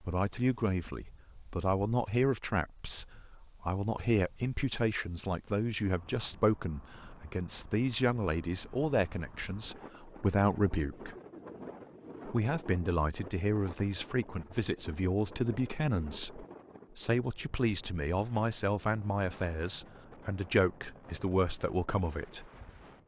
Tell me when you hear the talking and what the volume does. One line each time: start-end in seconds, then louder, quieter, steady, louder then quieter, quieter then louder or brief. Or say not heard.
0.0-11.2 steady
12.2-22.4 steady.